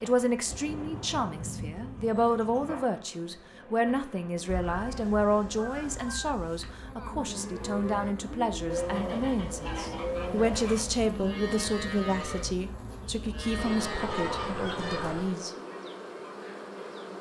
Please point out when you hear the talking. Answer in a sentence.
You can hear the talking from 0.0 to 15.5 s.